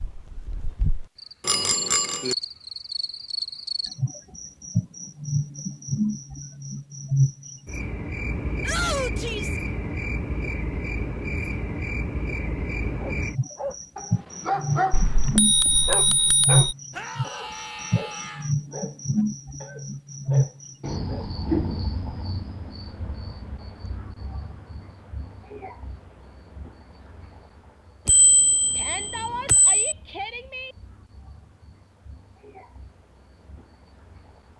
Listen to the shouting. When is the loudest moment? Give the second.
9 s.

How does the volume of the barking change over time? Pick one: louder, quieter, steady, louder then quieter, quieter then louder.
quieter.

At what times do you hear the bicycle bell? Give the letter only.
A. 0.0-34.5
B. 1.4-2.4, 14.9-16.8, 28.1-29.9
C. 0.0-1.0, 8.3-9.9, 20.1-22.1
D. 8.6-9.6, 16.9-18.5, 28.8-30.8
B.